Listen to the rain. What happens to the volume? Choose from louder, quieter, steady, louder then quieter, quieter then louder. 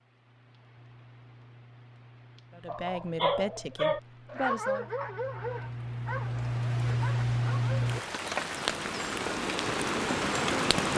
louder.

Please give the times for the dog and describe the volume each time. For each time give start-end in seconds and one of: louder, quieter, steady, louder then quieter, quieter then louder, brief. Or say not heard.
2.6-8.0 quieter.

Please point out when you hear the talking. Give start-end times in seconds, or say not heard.
2.5-4.9.